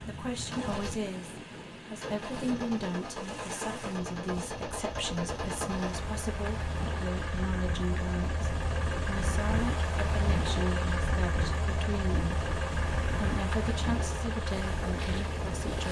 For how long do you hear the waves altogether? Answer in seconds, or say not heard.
16 s.